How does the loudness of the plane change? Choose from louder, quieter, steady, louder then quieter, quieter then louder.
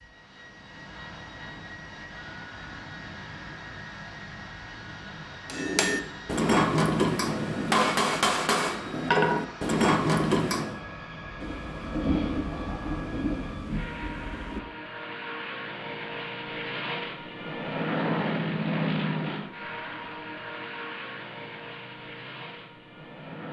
louder.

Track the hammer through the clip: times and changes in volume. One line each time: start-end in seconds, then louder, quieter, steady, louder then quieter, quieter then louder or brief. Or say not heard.
5.5-10.8 steady.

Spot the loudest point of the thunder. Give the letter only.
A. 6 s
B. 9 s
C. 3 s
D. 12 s
D.